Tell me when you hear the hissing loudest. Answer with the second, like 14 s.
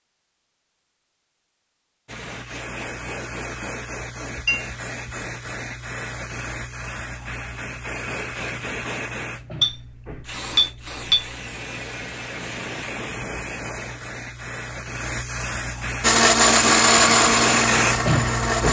18 s.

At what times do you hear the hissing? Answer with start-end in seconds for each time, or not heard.
2.0-18.6.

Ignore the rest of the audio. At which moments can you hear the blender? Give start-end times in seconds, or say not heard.
16.0-18.6.